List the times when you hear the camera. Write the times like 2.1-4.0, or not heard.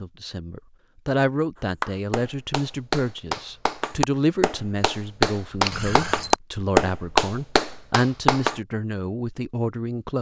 5.7-6.4.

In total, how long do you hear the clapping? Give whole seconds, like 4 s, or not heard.
7 s.